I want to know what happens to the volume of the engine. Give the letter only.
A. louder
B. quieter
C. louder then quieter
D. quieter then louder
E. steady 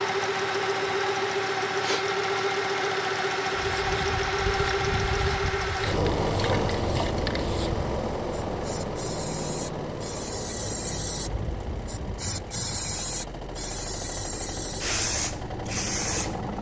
B.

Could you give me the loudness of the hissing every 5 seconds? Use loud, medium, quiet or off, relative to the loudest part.
medium, medium, loud, loud.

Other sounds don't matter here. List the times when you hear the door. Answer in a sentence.
The door can't be heard in this clip.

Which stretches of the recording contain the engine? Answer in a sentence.
The engine can be heard from 0.0 to 16.5 s.